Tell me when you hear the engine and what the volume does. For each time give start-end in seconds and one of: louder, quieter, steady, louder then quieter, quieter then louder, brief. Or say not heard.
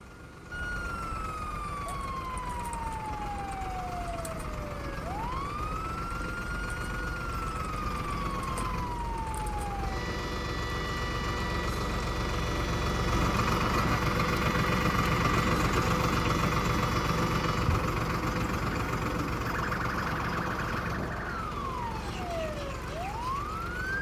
0.0-23.9 louder then quieter.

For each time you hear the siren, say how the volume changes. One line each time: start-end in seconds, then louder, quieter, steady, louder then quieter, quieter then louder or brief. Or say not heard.
0.0-23.9 steady.